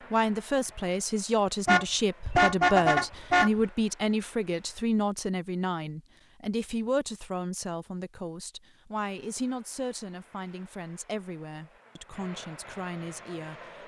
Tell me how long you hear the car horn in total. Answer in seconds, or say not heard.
2 s.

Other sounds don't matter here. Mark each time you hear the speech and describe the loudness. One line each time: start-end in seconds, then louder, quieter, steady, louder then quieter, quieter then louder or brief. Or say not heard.
0.1-13.8 quieter.